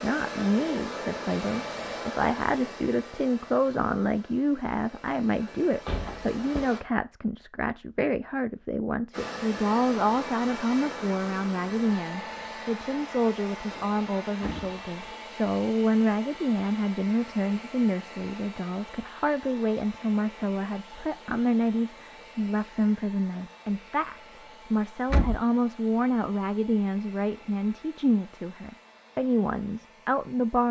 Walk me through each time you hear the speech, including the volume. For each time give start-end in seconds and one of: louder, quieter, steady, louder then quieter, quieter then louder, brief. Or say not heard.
0.0-30.6 steady.